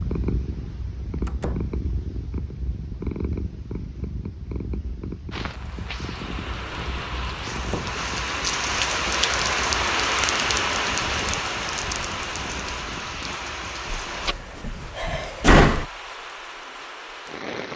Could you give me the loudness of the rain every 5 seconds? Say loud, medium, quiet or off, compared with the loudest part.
off, loud, loud, medium.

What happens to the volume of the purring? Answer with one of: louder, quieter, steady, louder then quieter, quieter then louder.
quieter.